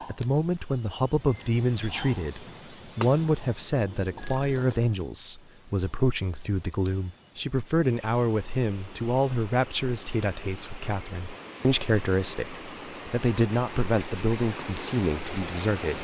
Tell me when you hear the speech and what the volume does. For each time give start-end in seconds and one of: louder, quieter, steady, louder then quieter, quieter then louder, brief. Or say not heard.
0.1-15.9 steady.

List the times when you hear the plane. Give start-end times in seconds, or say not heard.
not heard.